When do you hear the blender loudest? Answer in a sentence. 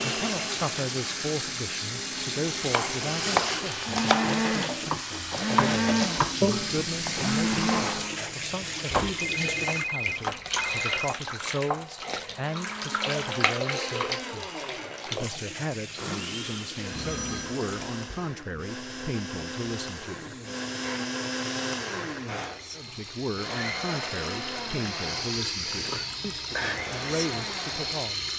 The volume of the blender peaks at 6 seconds.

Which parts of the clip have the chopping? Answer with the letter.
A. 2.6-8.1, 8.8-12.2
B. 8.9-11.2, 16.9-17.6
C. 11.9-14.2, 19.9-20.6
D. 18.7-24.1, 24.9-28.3
A.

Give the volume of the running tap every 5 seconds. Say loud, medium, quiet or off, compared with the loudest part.
loud, loud, loud, medium, medium, loud.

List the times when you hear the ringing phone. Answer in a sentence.
The ringing phone can be heard from 8.9 to 11.2 s and from 16.9 to 17.6 s.